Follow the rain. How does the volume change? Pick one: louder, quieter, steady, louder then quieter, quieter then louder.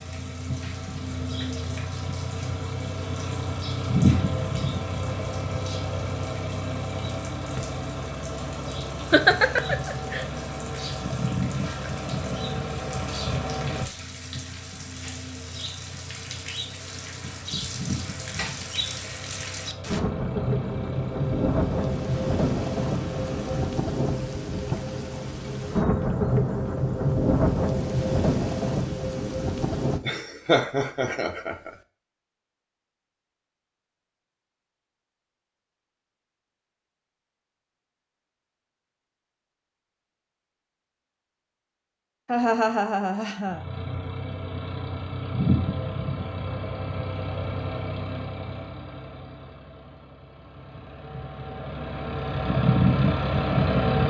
louder.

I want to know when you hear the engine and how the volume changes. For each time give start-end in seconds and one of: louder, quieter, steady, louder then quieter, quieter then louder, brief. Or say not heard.
0.0-23.8 quieter
43.5-54.0 quieter then louder.